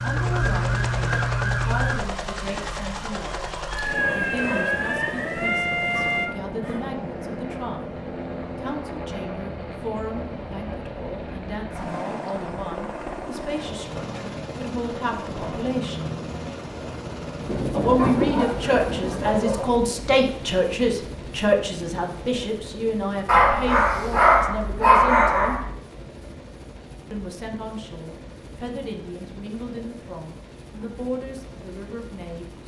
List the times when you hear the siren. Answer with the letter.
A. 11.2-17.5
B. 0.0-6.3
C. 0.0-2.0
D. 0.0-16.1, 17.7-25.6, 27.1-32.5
B.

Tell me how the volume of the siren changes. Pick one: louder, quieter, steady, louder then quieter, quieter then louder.
quieter then louder.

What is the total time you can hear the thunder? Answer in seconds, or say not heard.
2 s.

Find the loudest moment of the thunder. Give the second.
18 s.